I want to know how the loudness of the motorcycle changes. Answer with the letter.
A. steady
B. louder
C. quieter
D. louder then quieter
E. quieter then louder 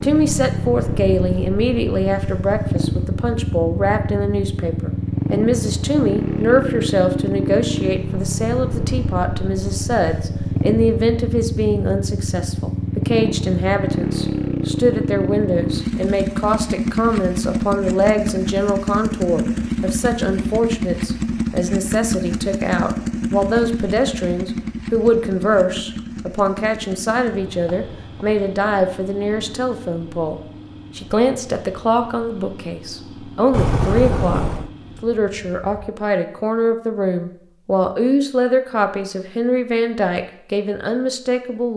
C.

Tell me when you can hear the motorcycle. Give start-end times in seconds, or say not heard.
0.0-35.9.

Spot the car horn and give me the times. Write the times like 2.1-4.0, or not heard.
33.5-34.7.